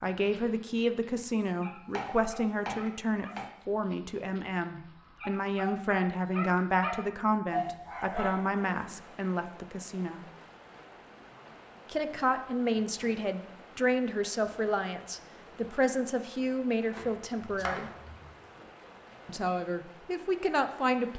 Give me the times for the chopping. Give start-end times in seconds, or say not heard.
1.4-3.5, 16.9-18.4.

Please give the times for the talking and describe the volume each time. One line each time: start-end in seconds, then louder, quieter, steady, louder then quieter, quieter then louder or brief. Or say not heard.
0.0-10.3 steady
11.8-17.9 steady
19.2-21.1 brief.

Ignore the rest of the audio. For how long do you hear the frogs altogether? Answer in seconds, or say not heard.
not heard.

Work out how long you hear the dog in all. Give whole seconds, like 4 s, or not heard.
9 s.